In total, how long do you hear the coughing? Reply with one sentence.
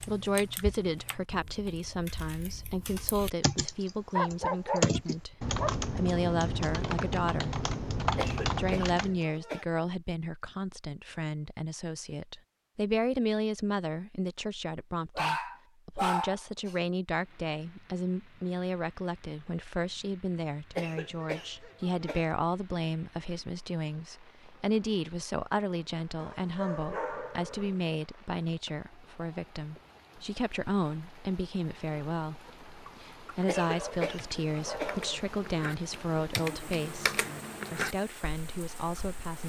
You can hear the coughing for 5 seconds altogether.